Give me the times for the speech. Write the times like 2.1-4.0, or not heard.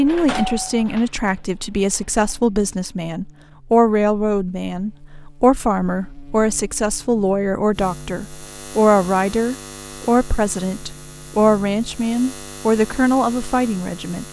0.0-14.2.